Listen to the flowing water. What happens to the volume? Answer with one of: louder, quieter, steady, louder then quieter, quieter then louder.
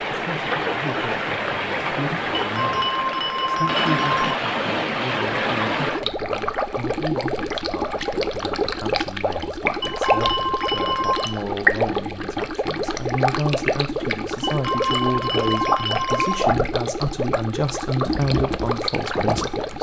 steady.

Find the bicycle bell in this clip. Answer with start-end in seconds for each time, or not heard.
2.5-4.3, 9.8-11.4, 14.4-16.4.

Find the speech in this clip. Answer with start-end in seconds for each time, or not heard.
0.1-19.7.